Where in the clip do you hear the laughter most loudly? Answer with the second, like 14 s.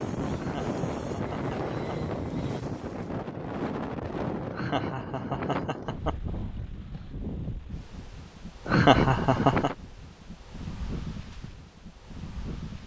9 s.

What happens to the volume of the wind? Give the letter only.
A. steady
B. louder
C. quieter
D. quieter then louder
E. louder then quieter
C.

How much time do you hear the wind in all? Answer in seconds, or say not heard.
13 s.